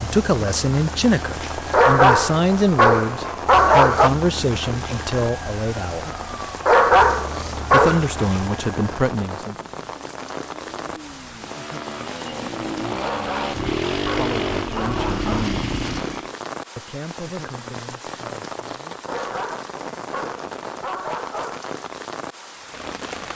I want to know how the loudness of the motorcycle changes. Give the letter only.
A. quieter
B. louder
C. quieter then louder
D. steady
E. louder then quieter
B.